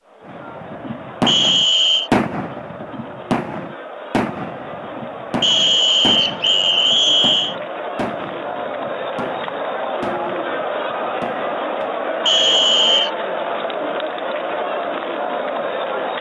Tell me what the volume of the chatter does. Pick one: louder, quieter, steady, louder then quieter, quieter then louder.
louder.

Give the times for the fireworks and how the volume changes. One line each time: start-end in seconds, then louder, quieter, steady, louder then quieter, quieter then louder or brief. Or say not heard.
0.2-11.9 quieter.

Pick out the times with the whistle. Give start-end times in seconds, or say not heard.
1.2-2.1, 5.4-7.5, 12.2-13.1.